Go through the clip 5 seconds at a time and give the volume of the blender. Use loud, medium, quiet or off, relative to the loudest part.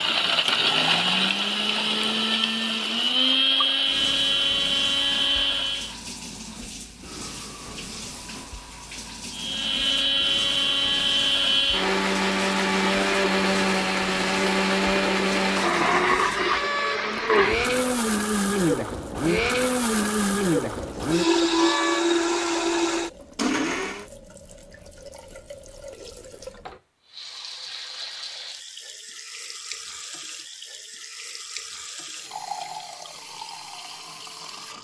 loud, loud, loud, loud, loud, off, off.